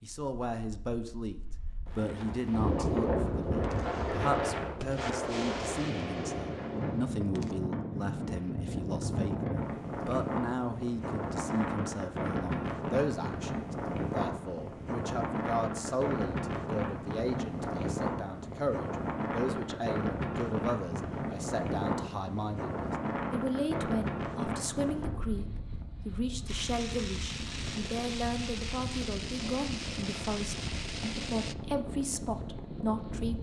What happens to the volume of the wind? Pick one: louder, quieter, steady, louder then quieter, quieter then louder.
quieter.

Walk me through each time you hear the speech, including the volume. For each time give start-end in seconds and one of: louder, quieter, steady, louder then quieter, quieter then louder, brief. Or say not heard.
0.0-33.3 steady.